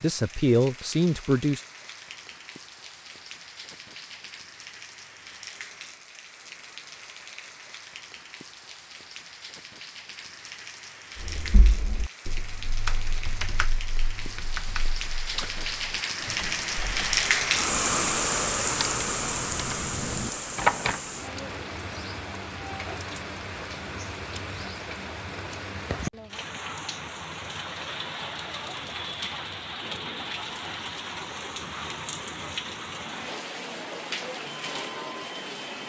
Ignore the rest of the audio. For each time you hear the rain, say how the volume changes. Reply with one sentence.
You can hear the rain from 0.0 to 35.8 s, getting louder then quieter.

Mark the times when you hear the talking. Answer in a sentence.
You can hear the talking from 0.0 to 1.6 s.